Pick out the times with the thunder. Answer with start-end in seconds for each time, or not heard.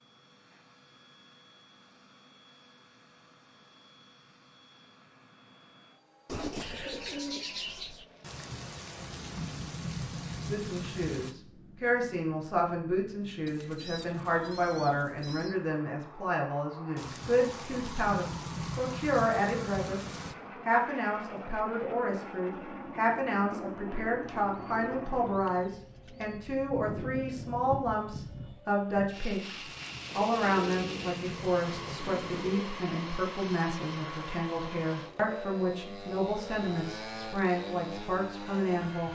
8.2-11.3, 16.9-20.4, 29.6-32.6.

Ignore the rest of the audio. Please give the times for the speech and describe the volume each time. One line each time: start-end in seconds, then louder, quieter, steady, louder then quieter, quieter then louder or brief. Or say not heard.
10.5-39.0 steady.